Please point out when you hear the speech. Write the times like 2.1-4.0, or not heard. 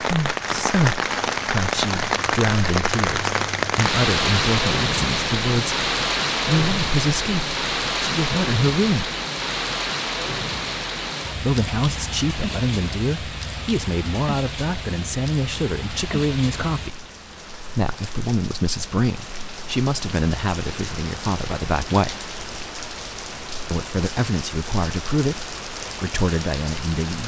0.0-5.8, 6.5-9.1, 11.3-17.1, 17.7-22.2, 23.7-27.2.